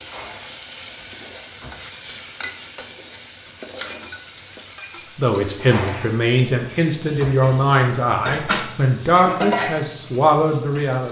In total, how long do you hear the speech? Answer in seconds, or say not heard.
6 s.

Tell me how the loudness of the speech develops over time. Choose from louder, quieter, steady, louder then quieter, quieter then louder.
steady.